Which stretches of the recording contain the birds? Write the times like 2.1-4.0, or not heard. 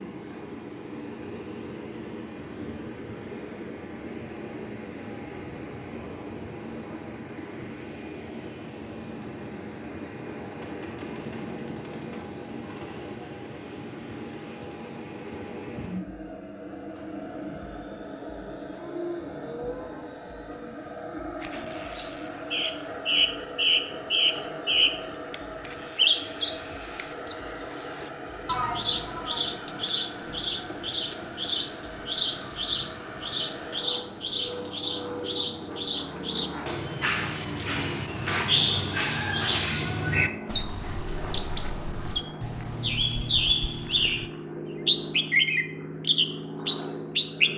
21.4-44.2, 44.9-47.5.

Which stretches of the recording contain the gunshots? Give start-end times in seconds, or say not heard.
10.6-13.2.